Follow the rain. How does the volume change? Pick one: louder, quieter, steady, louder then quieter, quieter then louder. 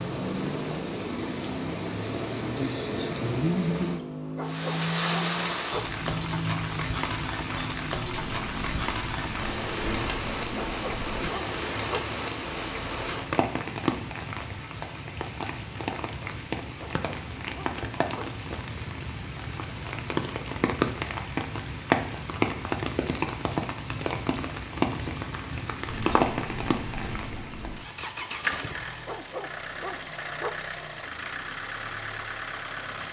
steady.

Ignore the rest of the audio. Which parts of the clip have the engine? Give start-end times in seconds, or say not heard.
0.0-11.3, 25.9-33.0.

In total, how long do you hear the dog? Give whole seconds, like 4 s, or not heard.
6 s.